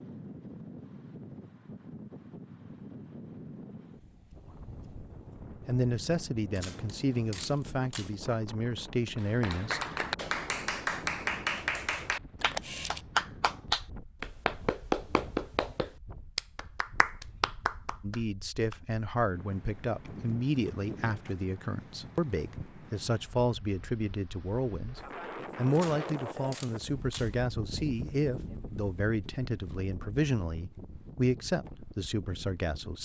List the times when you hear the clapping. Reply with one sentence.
You can hear the clapping from 9.2 to 18.8 s.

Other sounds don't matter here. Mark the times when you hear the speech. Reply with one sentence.
The speech can be heard from 5.7 to 9.8 s and from 18.0 to 33.0 s.